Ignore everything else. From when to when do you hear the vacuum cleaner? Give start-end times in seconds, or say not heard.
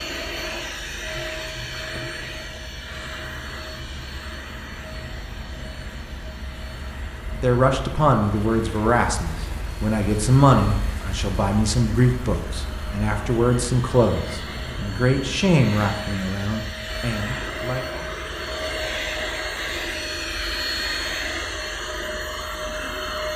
0.0-23.3.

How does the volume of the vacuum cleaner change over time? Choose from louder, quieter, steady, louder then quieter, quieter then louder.
quieter then louder.